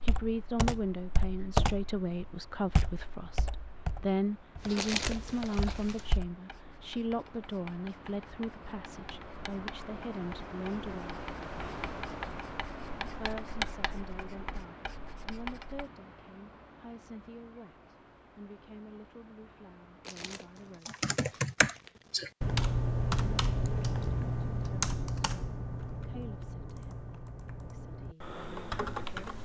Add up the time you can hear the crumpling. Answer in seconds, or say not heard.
3 s.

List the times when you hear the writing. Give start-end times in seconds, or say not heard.
4.5-15.8.